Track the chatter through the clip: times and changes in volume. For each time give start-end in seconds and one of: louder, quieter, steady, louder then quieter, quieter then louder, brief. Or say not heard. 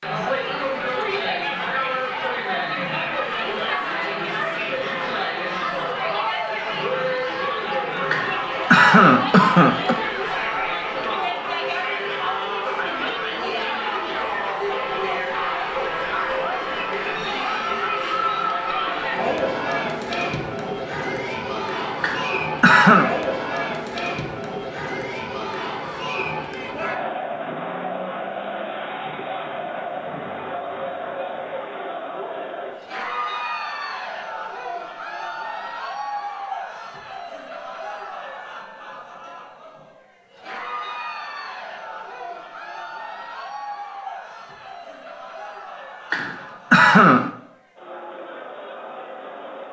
0.0-49.6 quieter.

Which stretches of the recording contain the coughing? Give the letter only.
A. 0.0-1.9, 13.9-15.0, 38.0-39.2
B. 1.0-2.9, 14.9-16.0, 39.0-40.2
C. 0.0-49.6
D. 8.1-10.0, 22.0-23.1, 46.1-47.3
D.